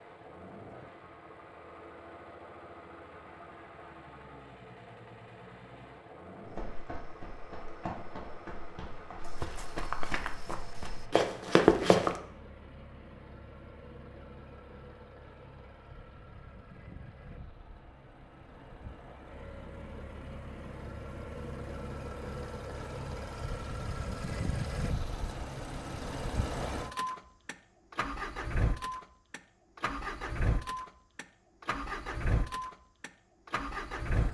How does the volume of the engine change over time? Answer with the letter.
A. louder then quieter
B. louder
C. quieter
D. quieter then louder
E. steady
B.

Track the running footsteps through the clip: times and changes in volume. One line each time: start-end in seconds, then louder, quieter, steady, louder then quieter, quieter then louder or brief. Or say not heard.
6.5-12.2 louder.